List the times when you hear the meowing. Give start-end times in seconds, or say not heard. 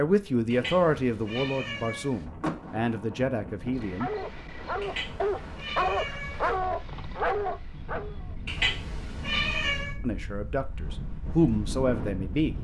0.5-2.2, 4.8-6.6, 8.4-9.9.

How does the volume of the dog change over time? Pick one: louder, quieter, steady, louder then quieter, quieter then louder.
louder then quieter.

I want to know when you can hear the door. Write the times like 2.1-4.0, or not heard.
2.4-3.3.